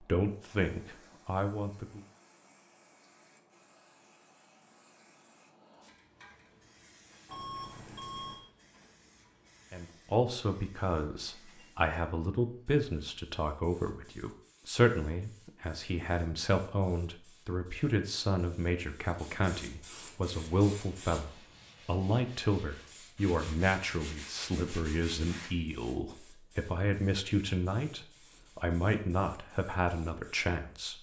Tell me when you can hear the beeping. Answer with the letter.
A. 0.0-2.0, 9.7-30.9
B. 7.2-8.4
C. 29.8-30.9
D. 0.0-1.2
B.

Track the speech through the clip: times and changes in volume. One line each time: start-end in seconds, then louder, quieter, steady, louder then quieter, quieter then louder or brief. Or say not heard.
0.0-2.0 brief
9.7-30.9 steady.